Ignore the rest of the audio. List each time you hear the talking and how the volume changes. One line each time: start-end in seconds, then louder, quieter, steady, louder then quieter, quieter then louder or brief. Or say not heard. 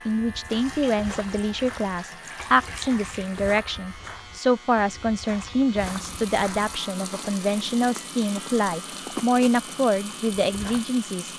0.1-11.3 steady.